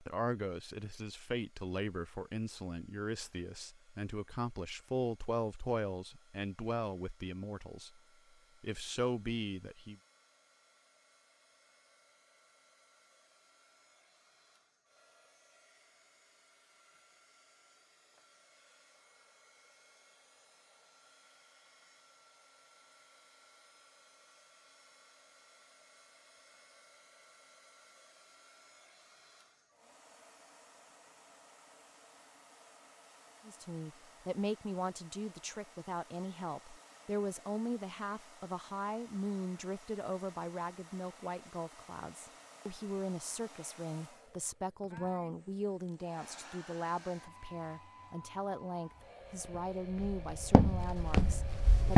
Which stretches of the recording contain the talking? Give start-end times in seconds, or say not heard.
0.0-8.0, 8.6-9.9, 33.5-51.9.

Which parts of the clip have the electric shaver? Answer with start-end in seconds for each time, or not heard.
not heard.